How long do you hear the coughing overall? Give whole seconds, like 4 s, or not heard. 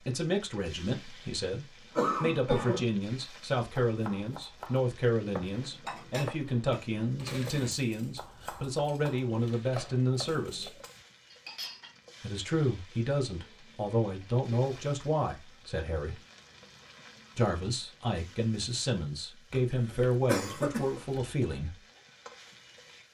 3 s.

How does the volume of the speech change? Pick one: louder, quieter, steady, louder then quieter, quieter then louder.
steady.